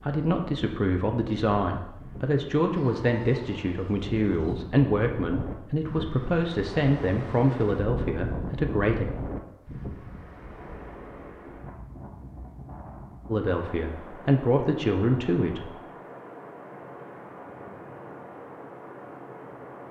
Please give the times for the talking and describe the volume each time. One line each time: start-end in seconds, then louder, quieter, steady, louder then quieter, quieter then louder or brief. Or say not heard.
0.0-9.1 steady
13.2-15.7 brief.